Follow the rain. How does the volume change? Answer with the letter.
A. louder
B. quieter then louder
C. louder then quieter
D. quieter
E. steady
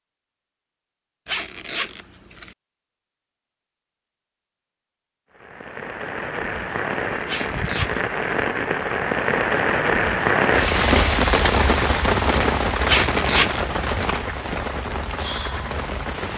C.